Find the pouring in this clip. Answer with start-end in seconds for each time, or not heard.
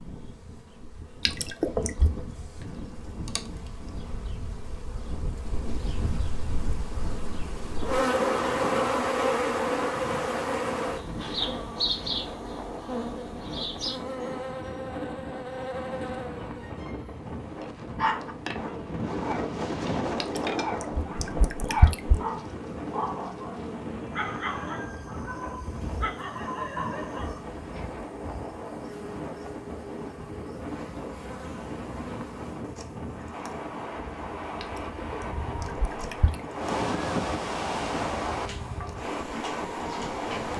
1.2-2.1, 20.2-22.2, 34.6-36.4.